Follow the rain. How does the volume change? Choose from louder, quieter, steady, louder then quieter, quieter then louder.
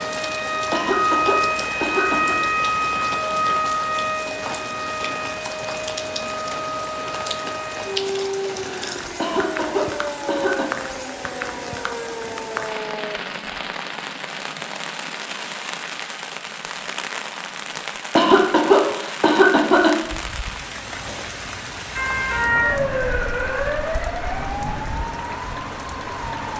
steady.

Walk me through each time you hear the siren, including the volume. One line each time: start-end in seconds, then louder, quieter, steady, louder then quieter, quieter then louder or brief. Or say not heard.
0.0-13.2 quieter
21.9-26.5 quieter.